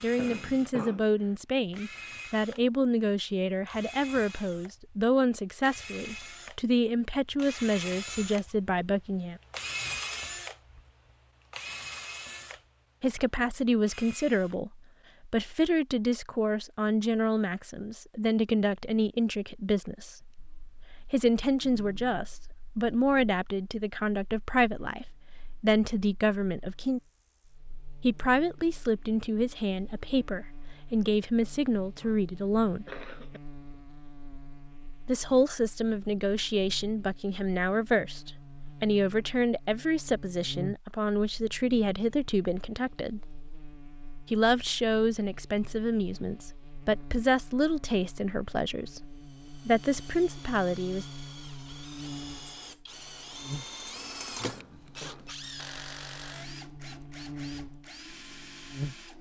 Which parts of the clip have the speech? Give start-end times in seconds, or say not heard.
0.0-9.4, 13.0-20.4, 21.1-27.0, 28.0-32.9, 35.0-43.3, 44.3-51.0.